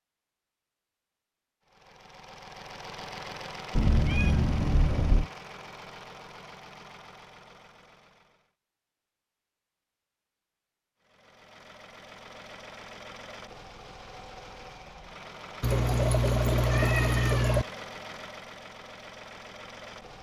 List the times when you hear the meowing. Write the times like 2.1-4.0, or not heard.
3.8-5.3, 15.6-17.6.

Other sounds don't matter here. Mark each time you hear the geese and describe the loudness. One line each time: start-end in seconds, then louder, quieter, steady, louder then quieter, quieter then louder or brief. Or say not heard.
not heard.